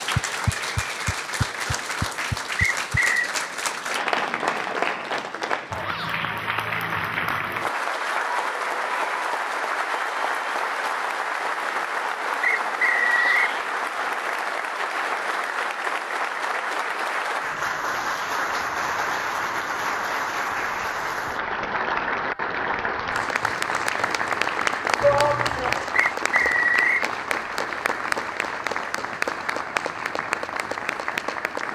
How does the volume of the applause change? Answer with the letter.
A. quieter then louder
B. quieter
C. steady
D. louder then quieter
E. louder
C.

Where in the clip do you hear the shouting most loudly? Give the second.
25 s.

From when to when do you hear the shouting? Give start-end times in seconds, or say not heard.
5.8-6.3, 13.1-13.7, 25.0-25.9.